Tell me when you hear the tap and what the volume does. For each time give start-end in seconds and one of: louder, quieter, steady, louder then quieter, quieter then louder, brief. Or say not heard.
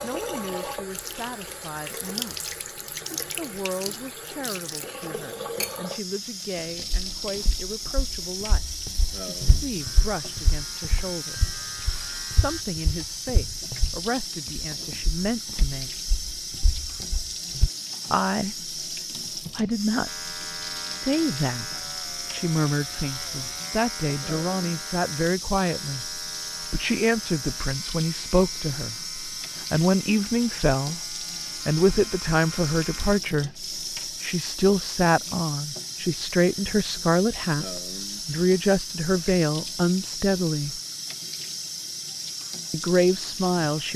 0.0-43.9 steady.